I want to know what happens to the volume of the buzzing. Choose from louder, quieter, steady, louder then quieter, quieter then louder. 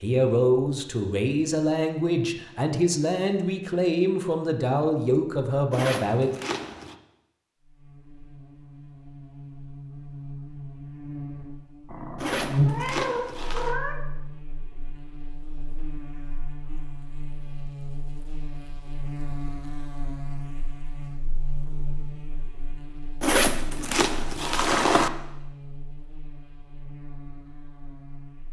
louder then quieter.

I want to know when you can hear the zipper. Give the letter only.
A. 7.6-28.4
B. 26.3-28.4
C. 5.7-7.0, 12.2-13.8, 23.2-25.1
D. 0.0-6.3
C.